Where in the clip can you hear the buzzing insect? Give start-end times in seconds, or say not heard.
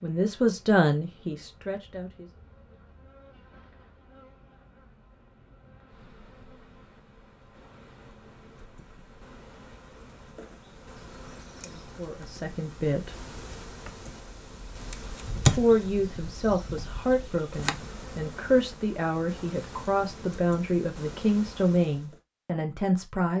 0.0-22.1.